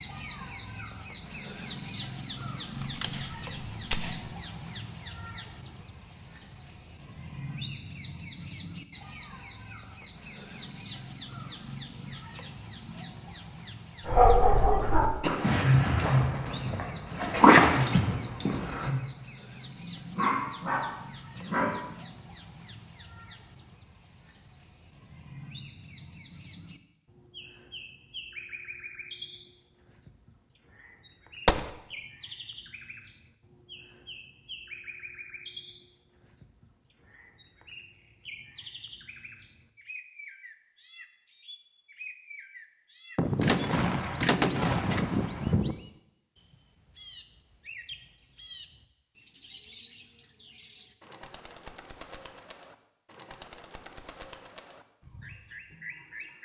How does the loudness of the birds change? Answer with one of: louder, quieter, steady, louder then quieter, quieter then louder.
quieter.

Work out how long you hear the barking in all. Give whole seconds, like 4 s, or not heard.
8 s.